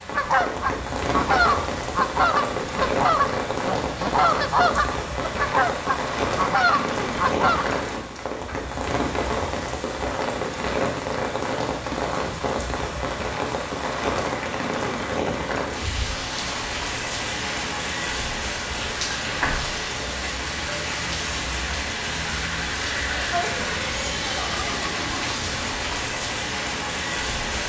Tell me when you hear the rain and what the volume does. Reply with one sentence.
The rain can be heard from 0.0 to 27.6 s, at a steady volume.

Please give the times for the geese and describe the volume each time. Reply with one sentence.
You can hear the geese from 0.1 to 7.7 s, at a steady volume.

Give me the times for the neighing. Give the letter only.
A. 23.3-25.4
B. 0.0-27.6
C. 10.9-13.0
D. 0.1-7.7
A.